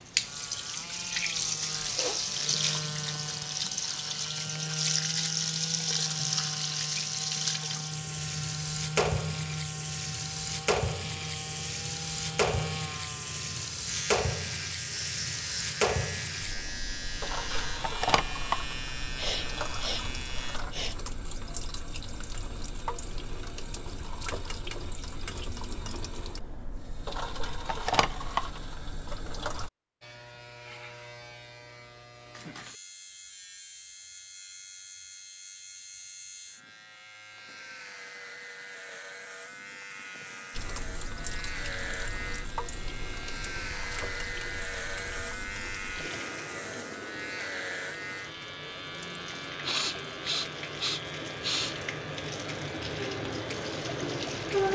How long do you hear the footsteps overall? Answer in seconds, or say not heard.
not heard.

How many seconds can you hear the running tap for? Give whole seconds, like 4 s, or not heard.
44 s.